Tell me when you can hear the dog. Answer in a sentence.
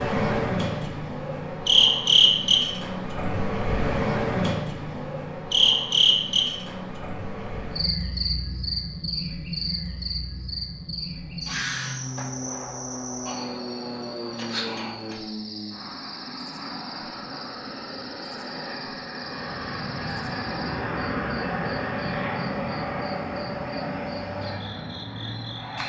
The dog can't be heard in this clip.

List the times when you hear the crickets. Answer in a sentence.
You can hear the crickets from 0.0 to 25.8 s.